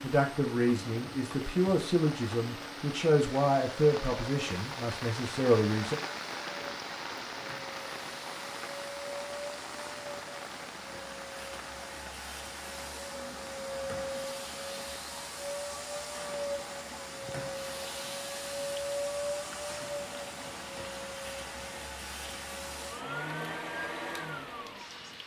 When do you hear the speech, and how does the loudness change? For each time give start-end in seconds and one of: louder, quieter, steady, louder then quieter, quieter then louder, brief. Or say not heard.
0.0-6.0 steady.